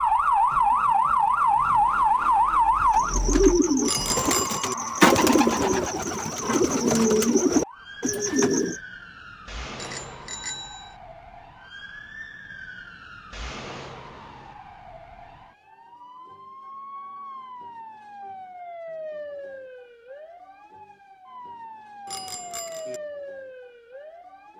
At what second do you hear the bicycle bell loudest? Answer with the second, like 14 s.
4 s.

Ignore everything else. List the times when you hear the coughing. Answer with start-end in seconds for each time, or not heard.
not heard.